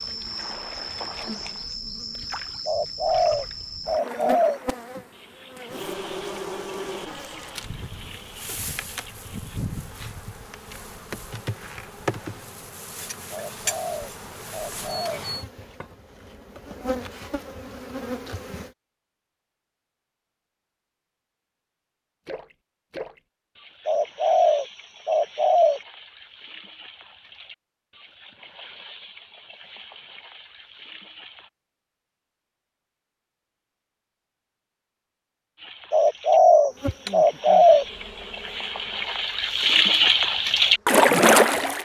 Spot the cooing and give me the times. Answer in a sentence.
You can hear the cooing from 2.6 to 4.6 s, from 13.3 to 15.2 s, from 23.9 to 25.8 s and from 35.9 to 37.9 s.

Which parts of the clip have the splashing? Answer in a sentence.
You can hear the splashing from 0.0 to 9.6 s, from 22.2 to 31.5 s and from 35.5 to 41.7 s.